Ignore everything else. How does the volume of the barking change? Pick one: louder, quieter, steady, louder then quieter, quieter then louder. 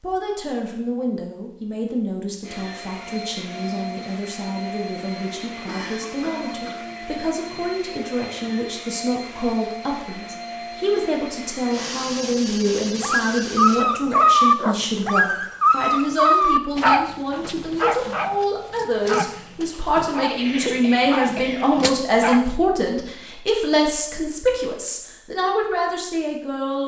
quieter.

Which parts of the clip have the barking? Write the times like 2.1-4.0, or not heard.
12.7-22.6.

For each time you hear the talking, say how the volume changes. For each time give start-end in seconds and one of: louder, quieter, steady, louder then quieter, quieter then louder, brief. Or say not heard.
0.0-26.8 louder.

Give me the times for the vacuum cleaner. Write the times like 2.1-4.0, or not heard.
2.4-13.8.